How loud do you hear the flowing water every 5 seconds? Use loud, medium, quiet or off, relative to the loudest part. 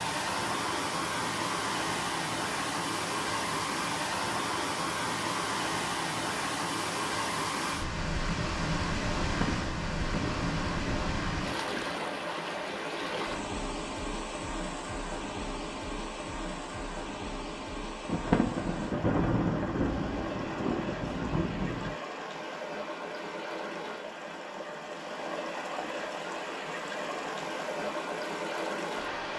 loud, loud, loud, medium, medium, loud.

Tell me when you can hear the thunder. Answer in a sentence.
You can hear the thunder from 9.2 to 11.8 s and from 18.1 to 21.9 s.